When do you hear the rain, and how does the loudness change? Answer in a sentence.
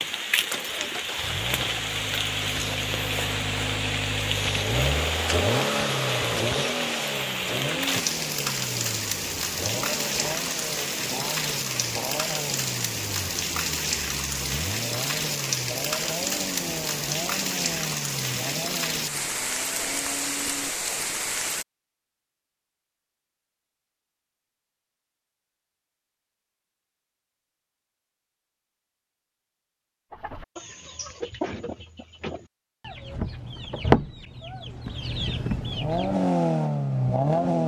You can hear the rain from 0.0 to 21.6 s, at a steady volume.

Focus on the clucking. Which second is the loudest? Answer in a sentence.
The loudest moment of the clucking is at 34 seconds.